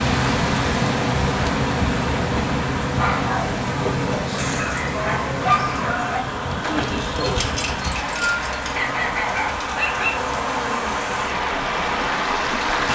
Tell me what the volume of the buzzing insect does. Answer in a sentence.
The volume of the buzzing insect goes down.